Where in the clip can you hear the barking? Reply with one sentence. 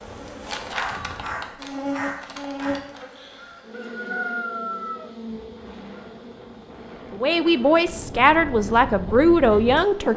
The barking can be heard from 0.5 to 2.8 s.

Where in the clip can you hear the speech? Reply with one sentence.
The speech can be heard from 7.1 to 10.1 s.